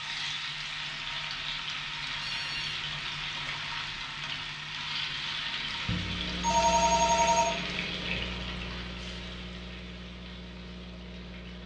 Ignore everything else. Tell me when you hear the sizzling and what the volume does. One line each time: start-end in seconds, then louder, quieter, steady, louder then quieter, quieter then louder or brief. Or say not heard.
0.0-11.6 quieter.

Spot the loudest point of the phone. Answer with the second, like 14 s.
7 s.